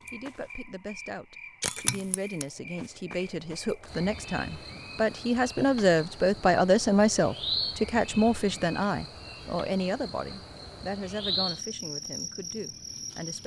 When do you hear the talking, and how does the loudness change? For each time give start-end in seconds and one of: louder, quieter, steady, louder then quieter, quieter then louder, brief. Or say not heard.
0.1-13.4 louder then quieter.